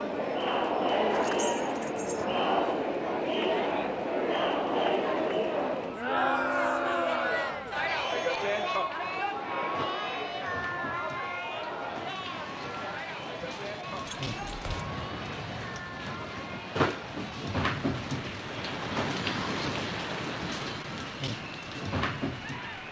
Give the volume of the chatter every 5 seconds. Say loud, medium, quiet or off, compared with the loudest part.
loud, loud, medium, quiet, quiet.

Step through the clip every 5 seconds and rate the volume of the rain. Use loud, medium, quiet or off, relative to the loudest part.
quiet, quiet, medium, loud, loud.